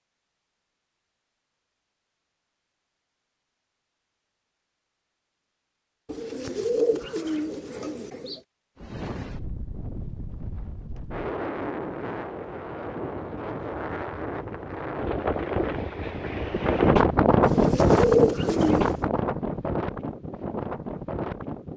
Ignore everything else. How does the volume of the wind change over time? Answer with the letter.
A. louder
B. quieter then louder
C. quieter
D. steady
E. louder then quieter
E.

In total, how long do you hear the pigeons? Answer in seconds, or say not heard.
4 s.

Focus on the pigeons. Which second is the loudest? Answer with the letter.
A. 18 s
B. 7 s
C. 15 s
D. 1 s
A.